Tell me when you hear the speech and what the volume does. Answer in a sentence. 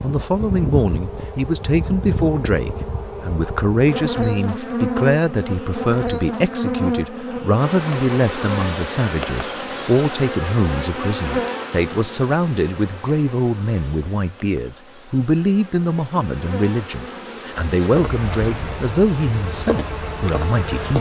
The speech can be heard from 0.0 to 20.9 s, at a steady volume.